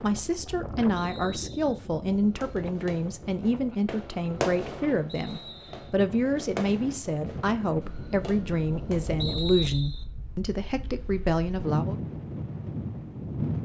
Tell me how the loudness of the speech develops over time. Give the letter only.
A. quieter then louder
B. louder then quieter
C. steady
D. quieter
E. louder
C.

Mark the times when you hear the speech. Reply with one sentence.
You can hear the speech from 0.0 to 12.0 s.